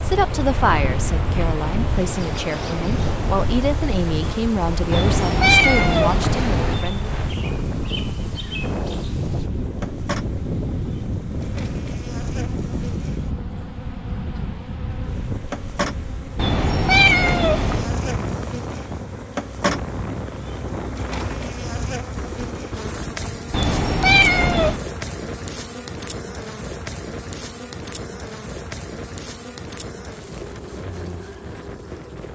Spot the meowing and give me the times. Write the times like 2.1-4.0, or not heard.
4.9-6.8, 16.4-17.9, 23.5-24.8.